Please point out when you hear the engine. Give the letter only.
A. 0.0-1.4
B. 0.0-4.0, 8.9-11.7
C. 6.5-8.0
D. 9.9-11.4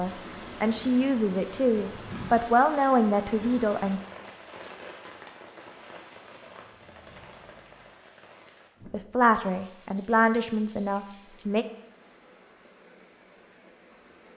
C.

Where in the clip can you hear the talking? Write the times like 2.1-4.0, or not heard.
0.0-4.0, 8.9-11.7.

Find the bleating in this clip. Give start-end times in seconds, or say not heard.
not heard.